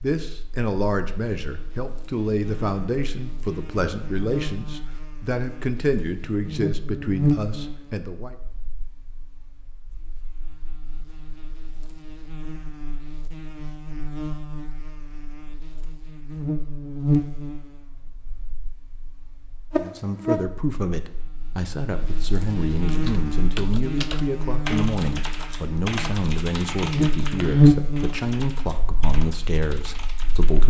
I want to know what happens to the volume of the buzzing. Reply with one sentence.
The volume of the buzzing goes up.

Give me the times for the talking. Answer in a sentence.
The talking can be heard from 0.0 to 8.3 s and from 19.8 to 30.6 s.